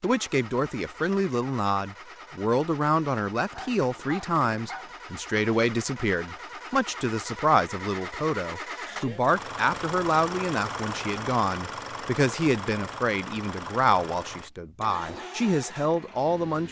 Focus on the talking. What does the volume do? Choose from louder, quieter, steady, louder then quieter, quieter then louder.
steady.